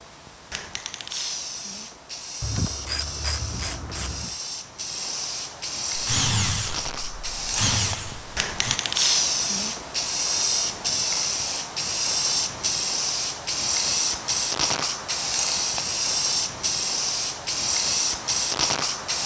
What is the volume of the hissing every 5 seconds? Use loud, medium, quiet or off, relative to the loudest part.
medium, loud, loud, loud.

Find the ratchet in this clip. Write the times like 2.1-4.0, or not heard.
2.4-4.4.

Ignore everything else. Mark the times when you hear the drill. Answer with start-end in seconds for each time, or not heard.
5.9-8.8.